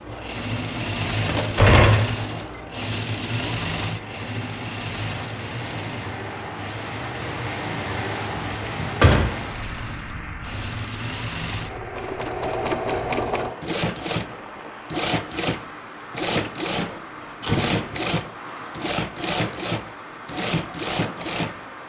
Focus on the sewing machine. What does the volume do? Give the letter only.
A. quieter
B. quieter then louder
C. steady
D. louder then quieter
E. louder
B.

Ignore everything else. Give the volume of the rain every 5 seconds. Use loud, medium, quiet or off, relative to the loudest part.
medium, loud, medium, medium, medium.